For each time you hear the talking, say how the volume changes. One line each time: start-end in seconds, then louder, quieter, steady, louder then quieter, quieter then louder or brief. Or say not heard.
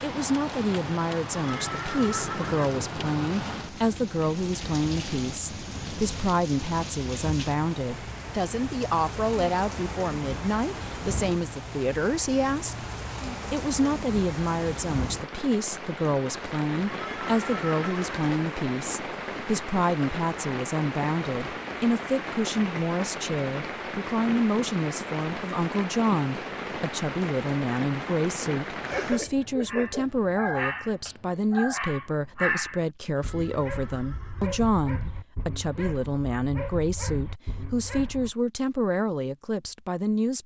0.0-12.8 steady
13.5-40.4 steady.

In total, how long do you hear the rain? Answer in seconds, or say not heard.
29 s.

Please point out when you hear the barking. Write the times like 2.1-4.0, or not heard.
28.9-38.4.